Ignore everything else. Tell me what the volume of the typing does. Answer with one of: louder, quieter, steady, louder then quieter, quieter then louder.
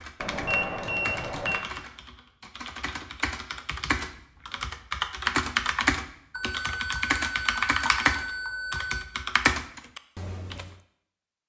louder.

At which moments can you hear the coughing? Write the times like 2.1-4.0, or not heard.
not heard.